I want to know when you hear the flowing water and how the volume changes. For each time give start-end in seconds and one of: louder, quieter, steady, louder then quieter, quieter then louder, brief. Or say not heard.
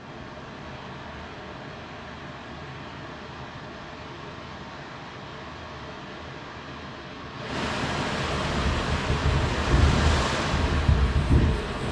0.0-11.8 louder.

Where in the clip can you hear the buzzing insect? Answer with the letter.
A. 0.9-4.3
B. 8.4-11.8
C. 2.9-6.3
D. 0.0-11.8
B.